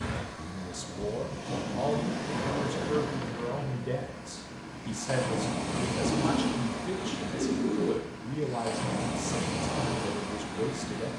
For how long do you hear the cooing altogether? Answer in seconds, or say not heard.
3 s.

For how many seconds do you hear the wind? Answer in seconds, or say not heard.
11 s.